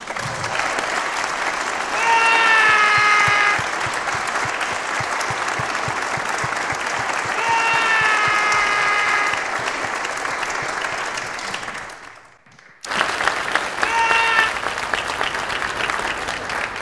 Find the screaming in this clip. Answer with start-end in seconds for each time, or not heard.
1.9-3.6, 7.3-9.4, 13.8-14.6.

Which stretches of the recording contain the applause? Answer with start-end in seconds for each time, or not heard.
0.0-16.7.